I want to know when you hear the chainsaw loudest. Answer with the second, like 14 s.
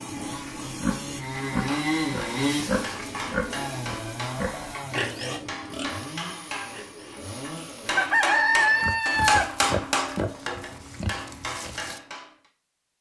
2 s.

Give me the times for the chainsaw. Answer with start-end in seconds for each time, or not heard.
0.0-8.3.